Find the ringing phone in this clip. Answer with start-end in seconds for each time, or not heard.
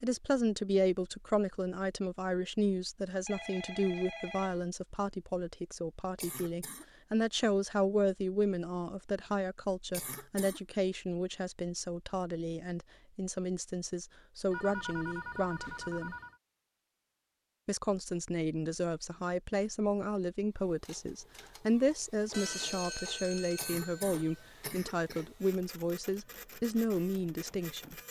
3.1-4.7, 14.5-16.4, 22.3-24.5.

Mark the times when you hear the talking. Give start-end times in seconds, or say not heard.
0.0-16.1, 17.6-27.9.